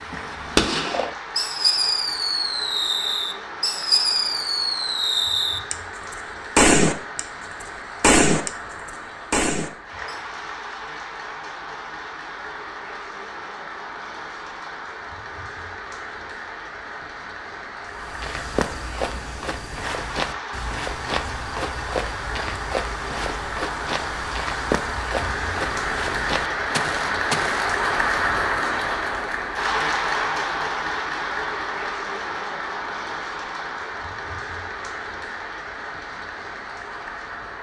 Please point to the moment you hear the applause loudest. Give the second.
28 s.